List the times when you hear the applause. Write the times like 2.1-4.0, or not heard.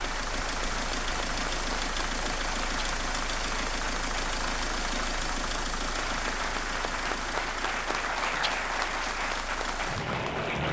0.0-10.6.